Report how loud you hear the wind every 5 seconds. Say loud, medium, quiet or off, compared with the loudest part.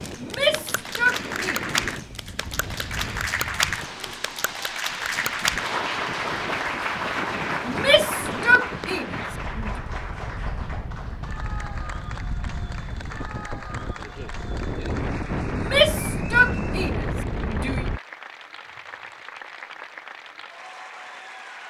medium, medium, medium, loud, off.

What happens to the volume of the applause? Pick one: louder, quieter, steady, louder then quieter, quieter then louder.
quieter.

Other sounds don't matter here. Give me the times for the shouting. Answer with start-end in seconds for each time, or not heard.
0.2-1.7, 7.7-9.7, 15.5-17.9.